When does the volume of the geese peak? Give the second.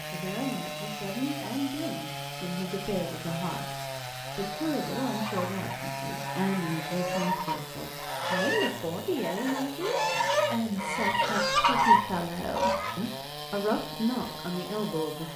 12 s.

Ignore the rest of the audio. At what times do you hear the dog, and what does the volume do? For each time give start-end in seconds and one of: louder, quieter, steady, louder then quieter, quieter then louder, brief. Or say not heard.
not heard.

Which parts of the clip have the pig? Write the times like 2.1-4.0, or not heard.
not heard.